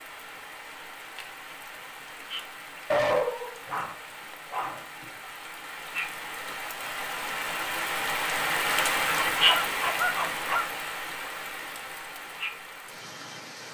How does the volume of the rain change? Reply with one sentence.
The volume of the rain goes up, then down.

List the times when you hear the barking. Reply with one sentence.
The barking can be heard from 2.9 to 5.0 s and from 9.2 to 10.7 s.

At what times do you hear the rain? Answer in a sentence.
You can hear the rain from 0.0 to 13.6 s.